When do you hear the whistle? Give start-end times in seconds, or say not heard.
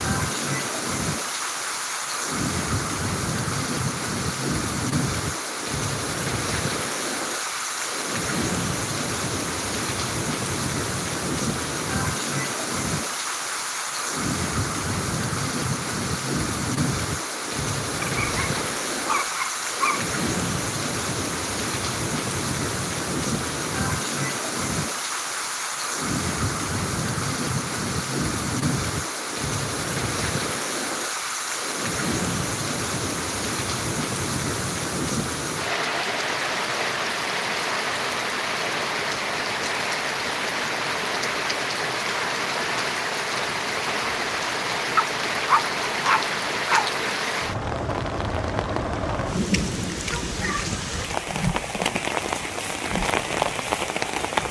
not heard.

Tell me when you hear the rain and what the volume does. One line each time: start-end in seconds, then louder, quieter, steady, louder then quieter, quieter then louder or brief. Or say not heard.
0.0-54.4 steady.